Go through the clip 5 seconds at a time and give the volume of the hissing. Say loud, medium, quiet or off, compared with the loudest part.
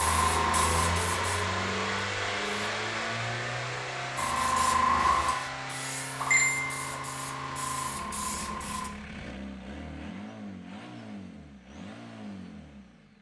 loud, loud, off.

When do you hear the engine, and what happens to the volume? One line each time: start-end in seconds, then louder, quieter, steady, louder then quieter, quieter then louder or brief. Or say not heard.
0.0-13.1 quieter.